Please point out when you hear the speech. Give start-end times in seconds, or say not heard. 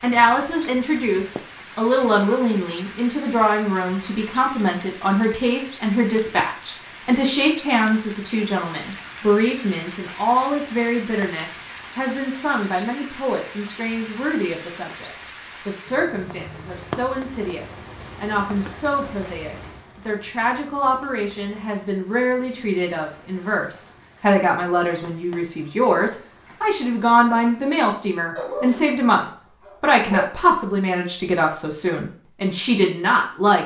0.0-33.6.